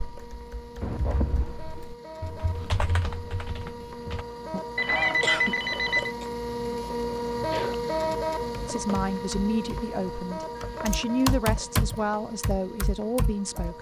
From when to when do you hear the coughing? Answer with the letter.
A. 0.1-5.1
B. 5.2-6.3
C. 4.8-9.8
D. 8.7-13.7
B.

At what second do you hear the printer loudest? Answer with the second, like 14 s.
8 s.